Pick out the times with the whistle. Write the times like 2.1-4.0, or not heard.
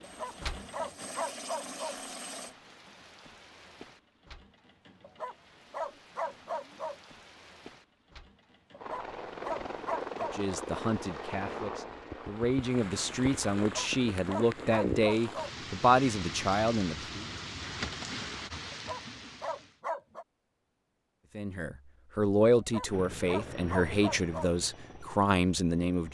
not heard.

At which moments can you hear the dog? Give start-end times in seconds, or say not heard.
0.0-1.9, 5.0-7.0, 8.7-10.4, 13.6-15.5, 18.7-20.2, 22.6-24.5.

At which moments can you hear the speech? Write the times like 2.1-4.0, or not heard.
10.2-17.2, 21.4-26.0.